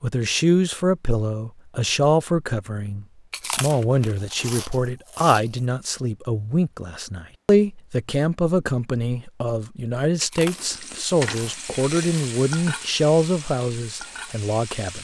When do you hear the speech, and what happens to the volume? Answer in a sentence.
You can hear the speech from 0.0 to 14.9 s, at a steady volume.